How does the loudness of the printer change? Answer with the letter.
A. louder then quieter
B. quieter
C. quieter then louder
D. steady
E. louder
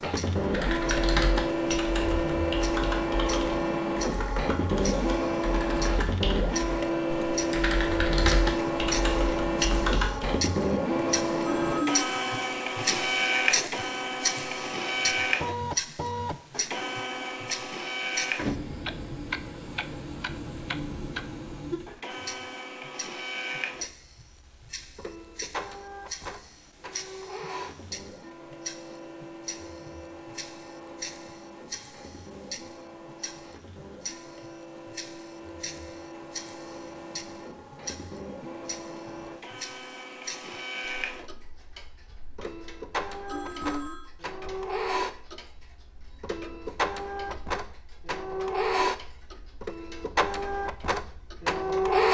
C.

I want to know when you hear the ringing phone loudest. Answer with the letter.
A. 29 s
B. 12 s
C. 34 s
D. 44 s
B.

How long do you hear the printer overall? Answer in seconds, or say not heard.
52 s.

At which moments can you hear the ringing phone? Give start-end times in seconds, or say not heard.
11.4-12.3, 43.2-44.1.